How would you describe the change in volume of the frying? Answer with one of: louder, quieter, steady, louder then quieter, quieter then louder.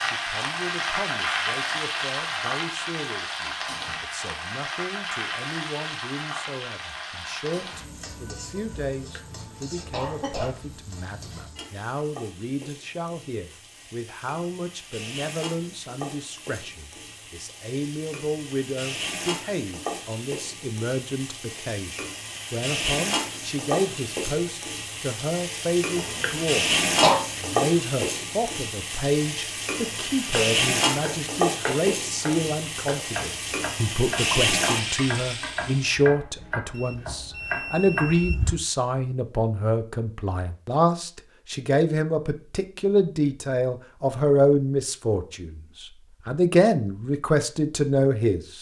quieter then louder.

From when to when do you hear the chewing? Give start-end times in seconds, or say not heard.
not heard.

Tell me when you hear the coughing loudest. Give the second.
27 s.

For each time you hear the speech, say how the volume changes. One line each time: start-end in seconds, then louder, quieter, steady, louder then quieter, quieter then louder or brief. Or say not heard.
0.0-48.5 louder.